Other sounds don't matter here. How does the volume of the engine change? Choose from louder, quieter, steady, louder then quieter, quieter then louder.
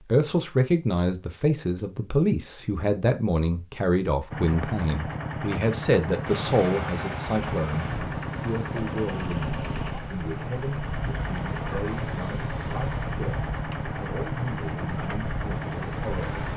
steady.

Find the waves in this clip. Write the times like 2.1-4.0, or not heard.
6.2-16.5.